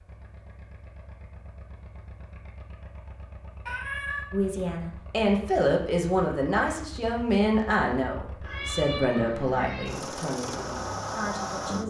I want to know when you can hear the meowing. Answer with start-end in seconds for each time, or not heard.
3.6-4.2, 8.4-9.9.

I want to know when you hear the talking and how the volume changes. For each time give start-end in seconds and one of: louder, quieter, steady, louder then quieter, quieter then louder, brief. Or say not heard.
4.3-11.8 quieter.